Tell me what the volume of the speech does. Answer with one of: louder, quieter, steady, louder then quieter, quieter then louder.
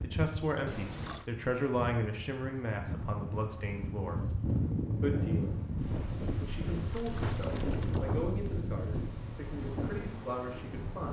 quieter.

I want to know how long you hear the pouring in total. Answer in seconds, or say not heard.
2 s.